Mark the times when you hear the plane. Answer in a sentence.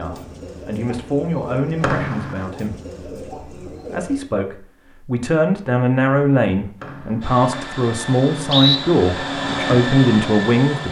You can hear the plane from 7.2 to 10.8 s.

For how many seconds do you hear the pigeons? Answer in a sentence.
The pigeons can be heard for 4 seconds in total.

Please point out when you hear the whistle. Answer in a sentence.
The whistle can be heard from 1.8 to 2.4 s and from 6.8 to 8.8 s.